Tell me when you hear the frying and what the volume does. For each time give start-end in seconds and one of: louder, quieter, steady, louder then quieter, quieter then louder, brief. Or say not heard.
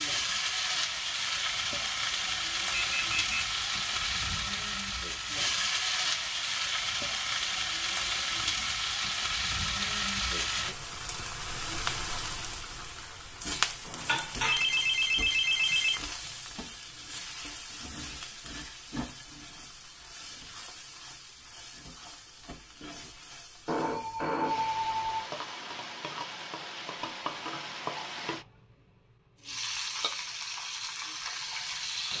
0.0-32.1 quieter then louder.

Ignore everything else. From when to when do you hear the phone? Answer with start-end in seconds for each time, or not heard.
2.7-3.2, 13.8-16.0, 23.6-25.2.